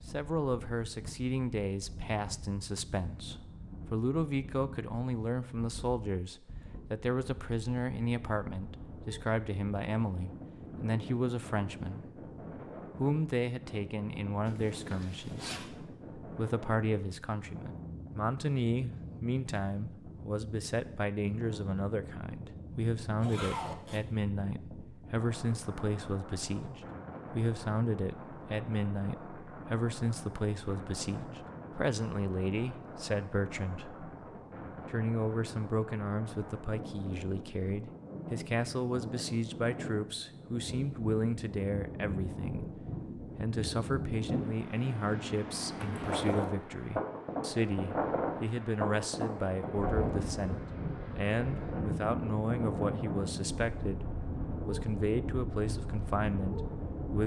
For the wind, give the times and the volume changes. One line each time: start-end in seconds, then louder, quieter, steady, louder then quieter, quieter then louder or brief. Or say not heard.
0.0-57.2 louder.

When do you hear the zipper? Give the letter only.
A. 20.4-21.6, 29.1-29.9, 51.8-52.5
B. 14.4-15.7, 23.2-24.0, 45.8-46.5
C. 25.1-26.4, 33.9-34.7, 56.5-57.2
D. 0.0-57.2
B.